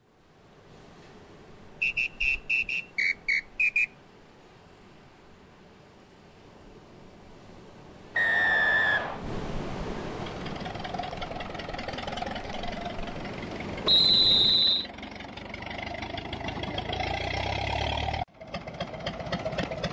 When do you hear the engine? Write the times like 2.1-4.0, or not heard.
10.2-19.8.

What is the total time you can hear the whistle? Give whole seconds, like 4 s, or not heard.
4 s.